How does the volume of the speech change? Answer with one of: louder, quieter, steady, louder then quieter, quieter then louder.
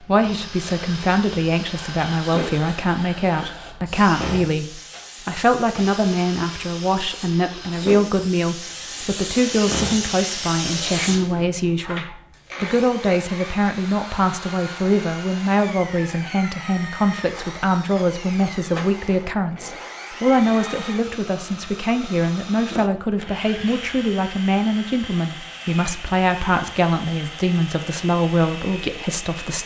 steady.